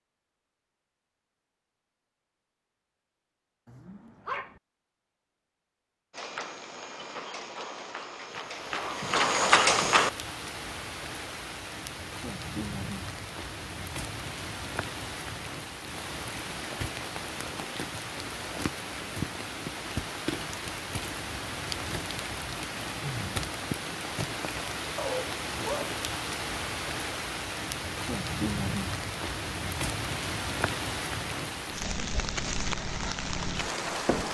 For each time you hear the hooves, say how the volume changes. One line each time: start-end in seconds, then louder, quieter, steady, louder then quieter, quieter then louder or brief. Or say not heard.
6.1-10.1 louder.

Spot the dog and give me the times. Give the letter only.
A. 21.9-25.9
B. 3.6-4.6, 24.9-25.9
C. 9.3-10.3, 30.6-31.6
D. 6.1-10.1
B.